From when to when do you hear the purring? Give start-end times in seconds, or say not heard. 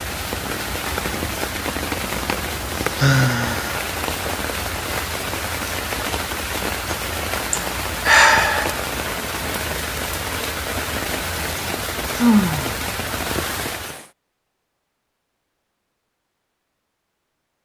not heard.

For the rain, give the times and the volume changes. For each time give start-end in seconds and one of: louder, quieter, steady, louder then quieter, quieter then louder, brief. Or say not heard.
0.0-14.1 steady.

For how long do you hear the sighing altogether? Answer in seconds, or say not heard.
3 s.